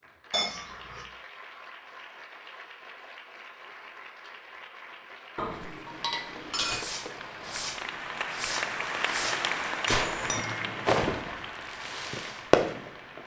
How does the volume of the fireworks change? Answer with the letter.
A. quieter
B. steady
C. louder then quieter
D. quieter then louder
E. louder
E.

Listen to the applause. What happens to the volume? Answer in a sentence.
The volume of the applause goes up, then down.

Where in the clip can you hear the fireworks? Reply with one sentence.
The fireworks can be heard from 6.7 to 13.2 s.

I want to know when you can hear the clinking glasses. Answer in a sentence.
The clinking glasses can be heard from 0.3 to 1.1 s, from 5.3 to 6.8 s and from 9.8 to 11.1 s.